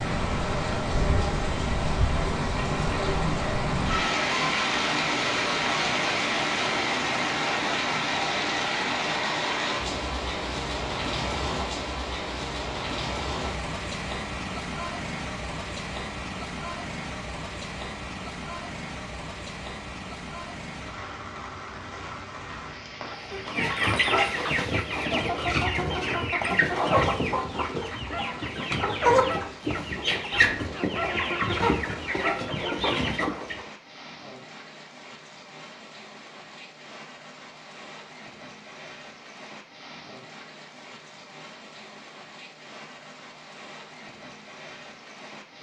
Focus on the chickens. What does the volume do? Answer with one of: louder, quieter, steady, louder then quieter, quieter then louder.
steady.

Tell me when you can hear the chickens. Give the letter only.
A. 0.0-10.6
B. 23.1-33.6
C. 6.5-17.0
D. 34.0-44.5
B.